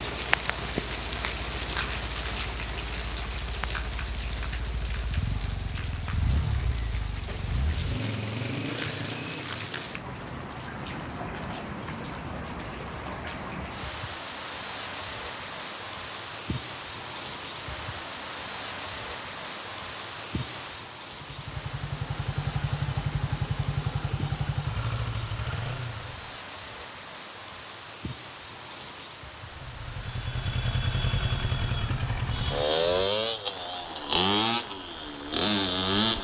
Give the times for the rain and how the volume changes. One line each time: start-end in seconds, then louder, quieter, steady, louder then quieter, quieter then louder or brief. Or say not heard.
0.0-36.2 quieter.